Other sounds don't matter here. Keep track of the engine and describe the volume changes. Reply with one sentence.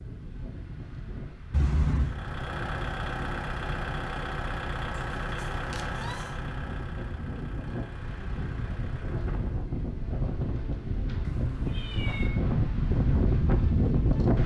The loudness of the engine goes down.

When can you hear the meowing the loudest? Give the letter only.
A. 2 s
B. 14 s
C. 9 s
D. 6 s
A.